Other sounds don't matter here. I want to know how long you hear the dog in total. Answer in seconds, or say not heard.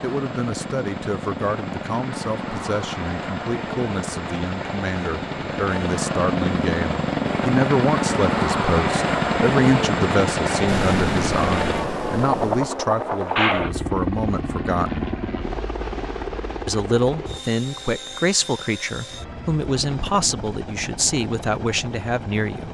not heard.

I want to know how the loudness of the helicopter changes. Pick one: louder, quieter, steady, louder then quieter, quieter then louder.
louder then quieter.